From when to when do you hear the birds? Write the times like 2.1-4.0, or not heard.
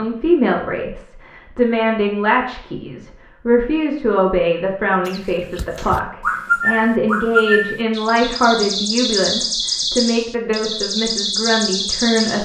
5.0-12.4.